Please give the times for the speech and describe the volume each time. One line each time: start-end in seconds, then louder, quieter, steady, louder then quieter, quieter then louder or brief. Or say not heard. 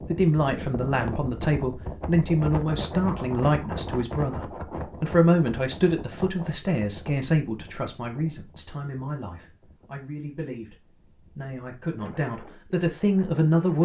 0.1-10.8 quieter
11.3-13.8 brief.